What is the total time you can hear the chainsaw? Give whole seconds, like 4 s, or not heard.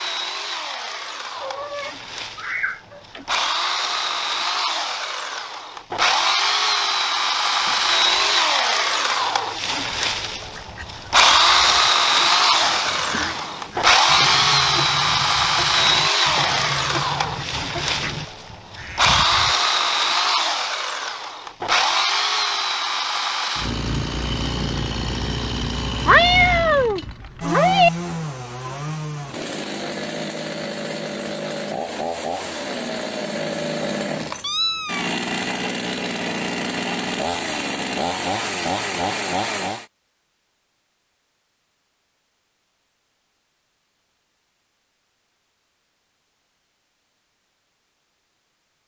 40 s.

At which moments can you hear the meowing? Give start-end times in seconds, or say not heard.
1.4-3.2, 26.1-27.9, 34.3-35.1.